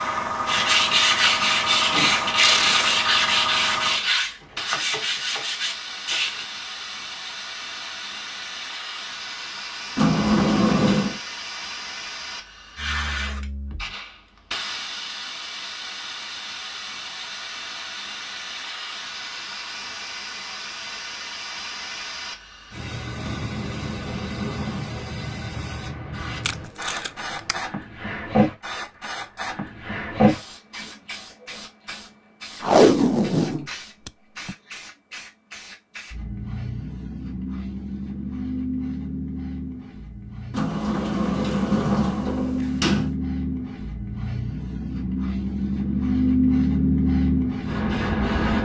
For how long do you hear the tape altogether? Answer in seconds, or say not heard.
4 s.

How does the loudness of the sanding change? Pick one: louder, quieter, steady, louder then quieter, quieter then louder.
quieter.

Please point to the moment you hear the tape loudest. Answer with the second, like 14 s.
33 s.